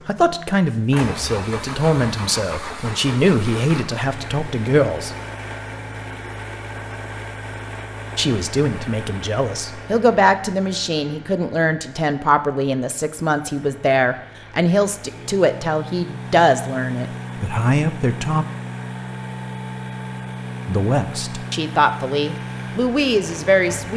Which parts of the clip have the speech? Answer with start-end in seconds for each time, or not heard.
0.1-5.1, 8.2-18.4, 20.6-23.9.